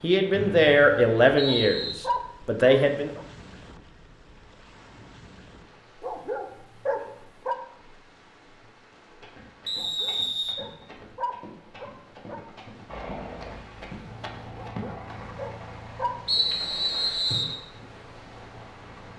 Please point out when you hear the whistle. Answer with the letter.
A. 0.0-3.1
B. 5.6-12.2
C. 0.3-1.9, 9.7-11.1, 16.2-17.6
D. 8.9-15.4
C.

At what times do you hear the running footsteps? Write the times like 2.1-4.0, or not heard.
8.9-15.4.